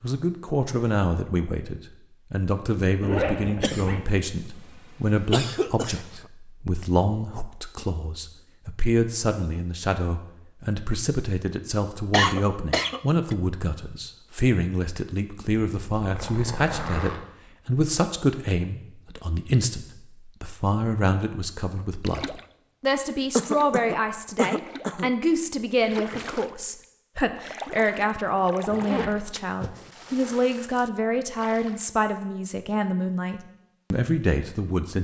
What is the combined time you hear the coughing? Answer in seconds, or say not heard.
6 s.